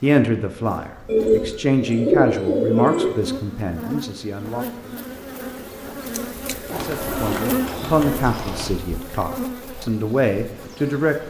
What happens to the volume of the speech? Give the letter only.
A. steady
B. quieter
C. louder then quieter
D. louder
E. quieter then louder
E.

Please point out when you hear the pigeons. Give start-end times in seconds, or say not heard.
1.1-3.1, 6.7-8.7.